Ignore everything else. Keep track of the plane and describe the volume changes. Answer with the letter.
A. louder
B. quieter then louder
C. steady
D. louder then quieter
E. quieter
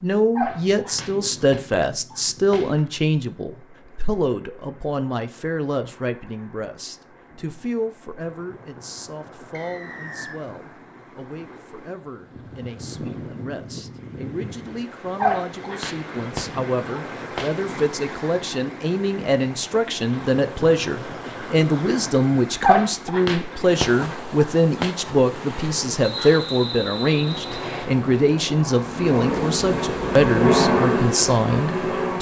D.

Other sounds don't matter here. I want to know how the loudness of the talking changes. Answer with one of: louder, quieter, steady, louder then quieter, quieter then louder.
quieter then louder.